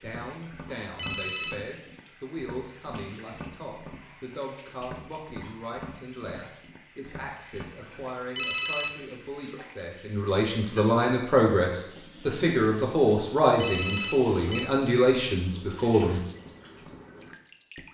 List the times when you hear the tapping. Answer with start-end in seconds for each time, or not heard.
0.0-8.1, 16.4-17.8.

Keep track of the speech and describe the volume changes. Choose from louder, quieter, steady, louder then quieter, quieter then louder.
louder.